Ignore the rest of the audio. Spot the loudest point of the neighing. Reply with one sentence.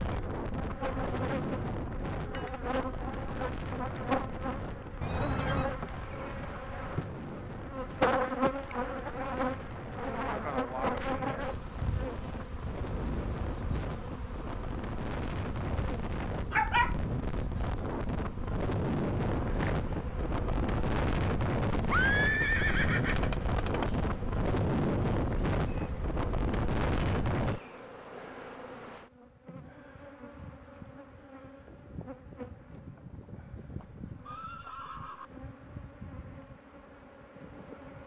The loudest moment of the neighing is at 22 seconds.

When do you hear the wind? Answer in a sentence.
You can hear the wind from 0.0 to 27.6 s.